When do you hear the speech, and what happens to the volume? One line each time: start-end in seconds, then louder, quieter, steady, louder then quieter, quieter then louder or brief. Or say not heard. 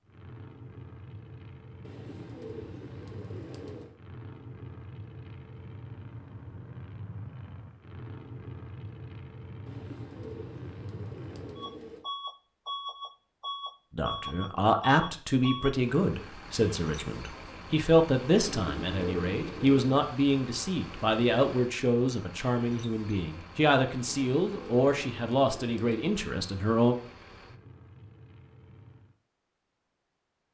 13.9-26.9 steady.